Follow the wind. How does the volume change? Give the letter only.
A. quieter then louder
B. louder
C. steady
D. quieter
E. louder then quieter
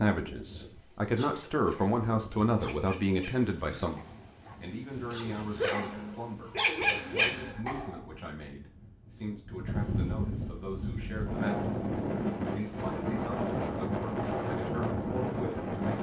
B.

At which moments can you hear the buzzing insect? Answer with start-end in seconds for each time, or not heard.
not heard.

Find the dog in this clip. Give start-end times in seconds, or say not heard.
1.1-8.1.